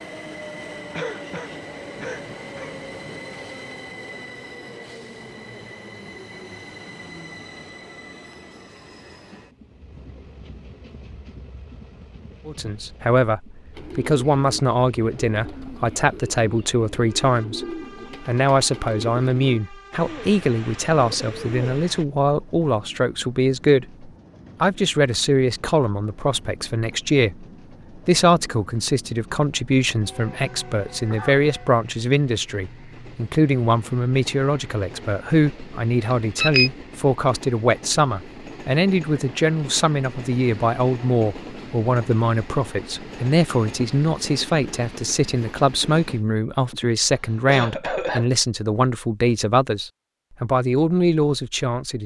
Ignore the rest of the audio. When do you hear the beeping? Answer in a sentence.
You can hear the beeping from 36.0 to 36.7 s.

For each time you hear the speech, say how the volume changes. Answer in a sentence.
The speech can be heard from 12.4 to 52.0 s, at a steady volume.